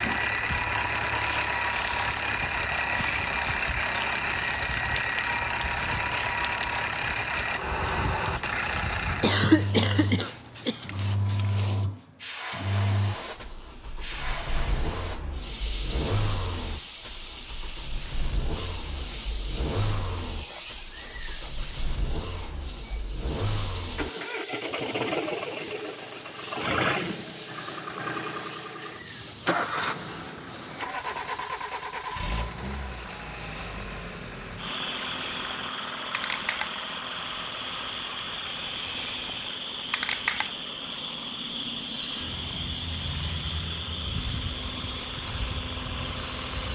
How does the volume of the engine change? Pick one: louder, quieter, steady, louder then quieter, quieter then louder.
quieter.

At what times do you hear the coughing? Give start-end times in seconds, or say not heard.
9.2-10.8.